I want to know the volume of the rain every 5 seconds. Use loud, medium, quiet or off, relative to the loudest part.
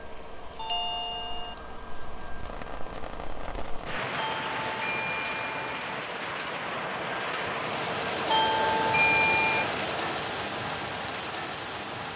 medium, loud, loud.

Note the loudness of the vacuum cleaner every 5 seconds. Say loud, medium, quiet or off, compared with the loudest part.
medium, loud, medium.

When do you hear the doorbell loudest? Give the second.
9 s.